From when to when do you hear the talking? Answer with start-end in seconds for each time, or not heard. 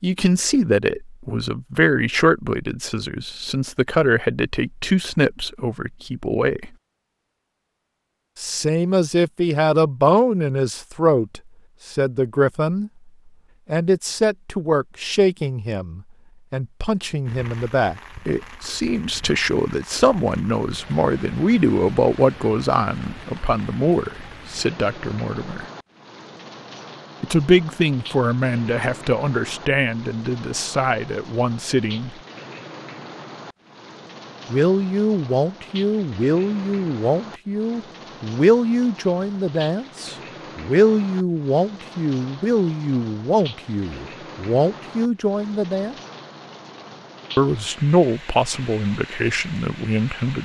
0.0-6.7, 8.3-12.9, 13.7-25.6, 27.2-32.1, 34.5-46.0, 47.4-50.4.